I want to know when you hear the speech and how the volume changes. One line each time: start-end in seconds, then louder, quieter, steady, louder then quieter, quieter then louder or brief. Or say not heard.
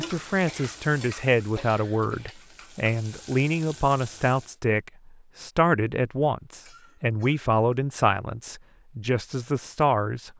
0.0-10.3 steady.